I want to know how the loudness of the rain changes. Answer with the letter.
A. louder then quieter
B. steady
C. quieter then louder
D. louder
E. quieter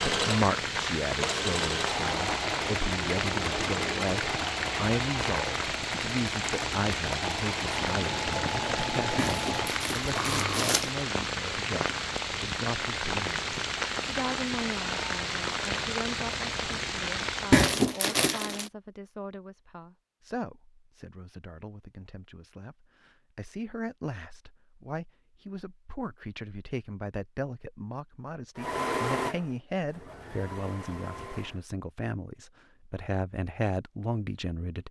B.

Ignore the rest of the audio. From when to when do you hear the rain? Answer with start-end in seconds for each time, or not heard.
0.0-17.7.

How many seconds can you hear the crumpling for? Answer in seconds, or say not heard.
3 s.